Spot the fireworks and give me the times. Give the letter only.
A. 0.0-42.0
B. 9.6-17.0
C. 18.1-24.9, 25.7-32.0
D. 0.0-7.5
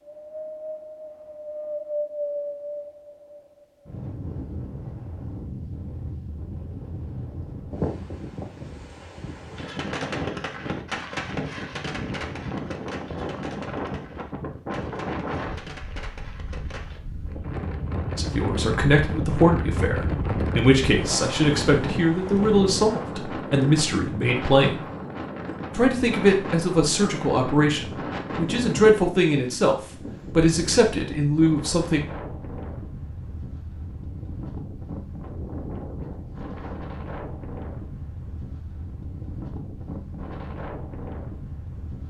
B.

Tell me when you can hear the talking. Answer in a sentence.
The talking can be heard from 18.1 to 24.9 s and from 25.7 to 32.0 s.